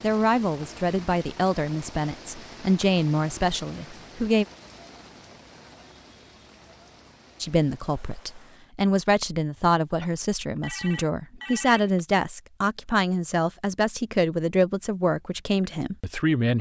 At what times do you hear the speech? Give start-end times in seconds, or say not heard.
0.0-4.5, 7.4-16.5.